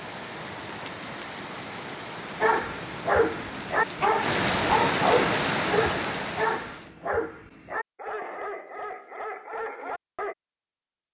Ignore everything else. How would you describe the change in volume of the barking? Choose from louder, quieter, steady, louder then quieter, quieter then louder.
quieter.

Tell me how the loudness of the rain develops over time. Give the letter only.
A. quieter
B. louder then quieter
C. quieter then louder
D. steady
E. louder
E.